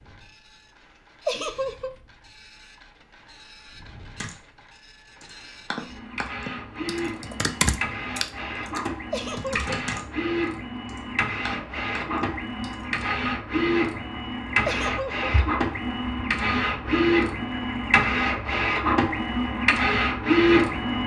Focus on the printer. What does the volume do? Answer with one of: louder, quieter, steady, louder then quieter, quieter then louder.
louder.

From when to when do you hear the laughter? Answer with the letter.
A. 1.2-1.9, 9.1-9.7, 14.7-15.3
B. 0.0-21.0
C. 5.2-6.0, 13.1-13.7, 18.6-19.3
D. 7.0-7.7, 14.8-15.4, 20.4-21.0
A.